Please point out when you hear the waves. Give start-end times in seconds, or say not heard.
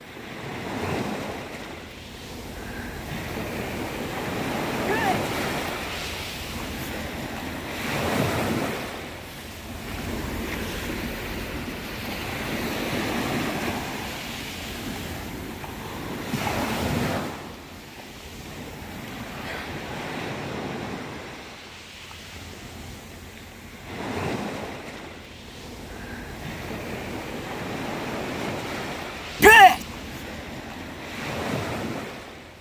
0.0-32.5.